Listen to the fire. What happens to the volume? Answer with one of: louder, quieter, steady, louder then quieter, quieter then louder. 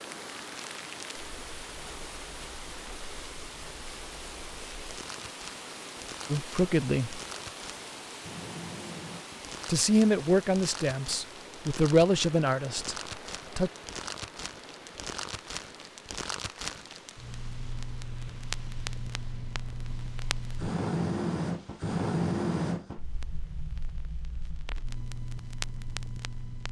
louder.